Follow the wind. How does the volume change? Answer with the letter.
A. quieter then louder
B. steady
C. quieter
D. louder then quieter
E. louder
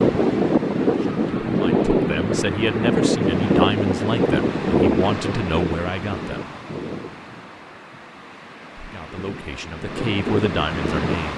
A.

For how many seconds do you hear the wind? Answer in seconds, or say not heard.
11 s.